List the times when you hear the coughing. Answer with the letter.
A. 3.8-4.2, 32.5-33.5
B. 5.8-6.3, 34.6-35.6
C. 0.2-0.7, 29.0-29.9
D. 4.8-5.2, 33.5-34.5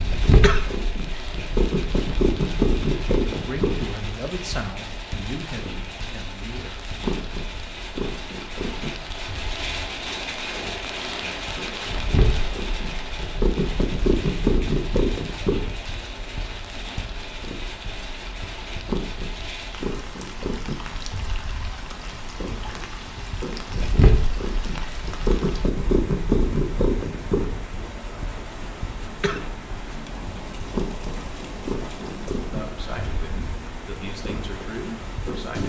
C.